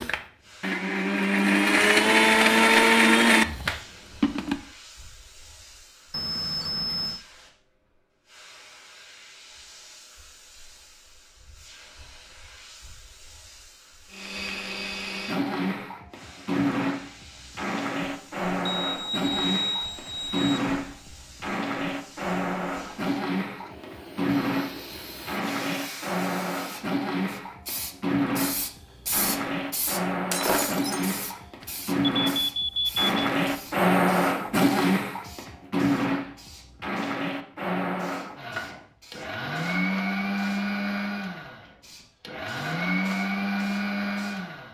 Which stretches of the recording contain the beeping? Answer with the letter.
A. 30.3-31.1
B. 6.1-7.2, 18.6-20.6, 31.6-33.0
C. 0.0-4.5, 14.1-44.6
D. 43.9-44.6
B.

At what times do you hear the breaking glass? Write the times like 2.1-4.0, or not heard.
30.3-31.1.